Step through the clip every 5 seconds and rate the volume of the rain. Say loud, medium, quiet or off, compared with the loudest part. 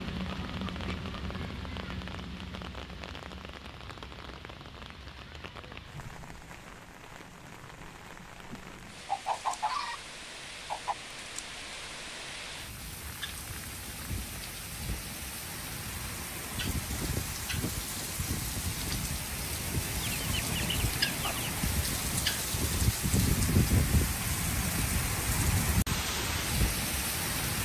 medium, quiet, medium, medium, loud, loud.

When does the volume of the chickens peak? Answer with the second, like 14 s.
10 s.